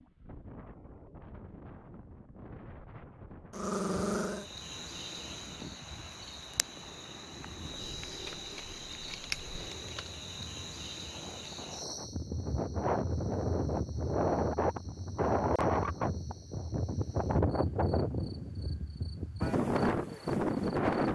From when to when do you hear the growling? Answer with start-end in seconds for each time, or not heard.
3.5-4.5.